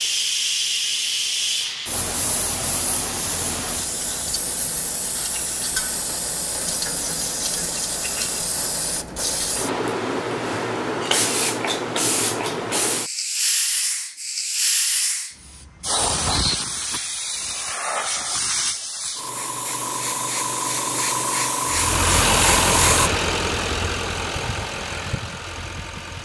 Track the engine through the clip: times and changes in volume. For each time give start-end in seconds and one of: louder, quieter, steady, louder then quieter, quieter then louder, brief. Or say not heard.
21.6-26.2 quieter.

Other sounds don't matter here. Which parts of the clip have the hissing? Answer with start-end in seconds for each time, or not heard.
0.0-23.1.